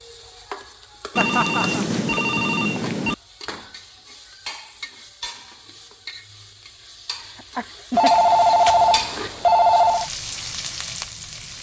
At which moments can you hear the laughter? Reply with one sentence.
You can hear the laughter from 1.1 to 1.9 s and from 7.2 to 8.2 s.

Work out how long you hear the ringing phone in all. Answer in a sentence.
The ringing phone can be heard for 4 seconds in total.